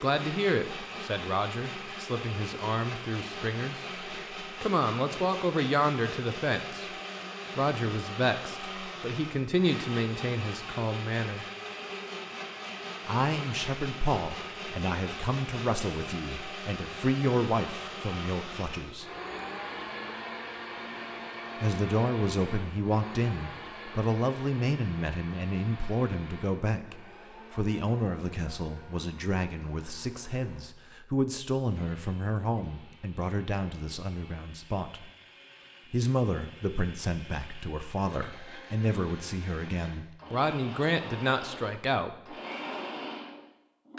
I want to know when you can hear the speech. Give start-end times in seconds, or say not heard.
0.0-6.8, 7.5-11.4, 13.1-19.1, 21.6-35.1, 35.9-42.4.